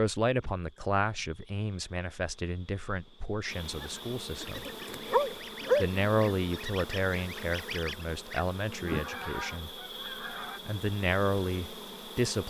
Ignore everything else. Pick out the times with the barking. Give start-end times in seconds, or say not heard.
4.4-6.1.